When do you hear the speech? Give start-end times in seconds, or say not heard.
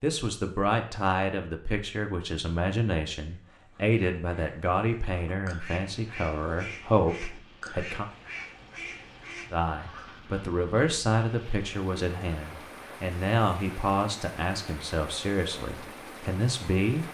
0.0-8.1, 9.5-17.0.